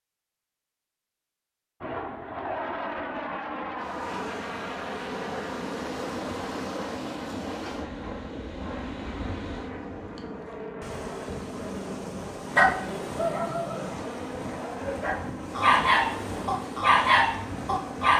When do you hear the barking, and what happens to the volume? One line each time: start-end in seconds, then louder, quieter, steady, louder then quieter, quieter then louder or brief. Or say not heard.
12.6-18.1 quieter then louder.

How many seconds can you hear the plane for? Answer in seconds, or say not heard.
16 s.